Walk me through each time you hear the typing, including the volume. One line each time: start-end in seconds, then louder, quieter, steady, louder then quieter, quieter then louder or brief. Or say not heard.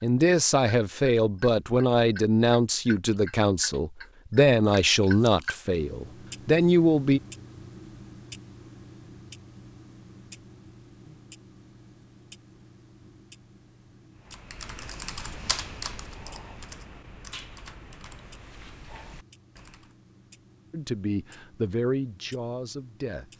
14.2-19.9 quieter.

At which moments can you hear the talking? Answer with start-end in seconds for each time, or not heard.
0.0-7.2, 20.7-23.2.